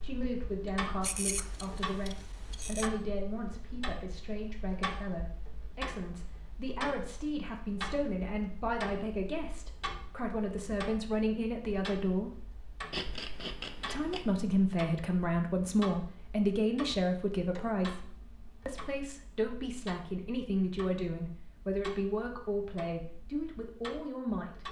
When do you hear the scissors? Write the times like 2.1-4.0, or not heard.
1.0-2.9, 12.9-14.4.